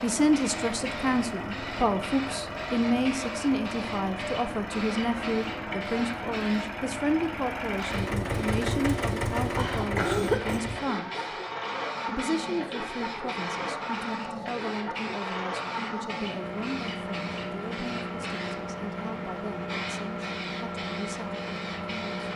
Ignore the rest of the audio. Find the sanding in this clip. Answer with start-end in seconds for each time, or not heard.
not heard.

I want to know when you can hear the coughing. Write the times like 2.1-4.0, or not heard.
9.6-10.6.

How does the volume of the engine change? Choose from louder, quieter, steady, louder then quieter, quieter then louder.
steady.